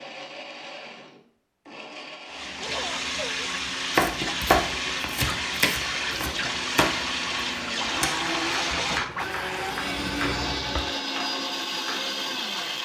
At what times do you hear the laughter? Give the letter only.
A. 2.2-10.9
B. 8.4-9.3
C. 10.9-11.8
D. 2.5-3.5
D.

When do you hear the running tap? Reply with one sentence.
The running tap can be heard from 2.2 to 10.9 s.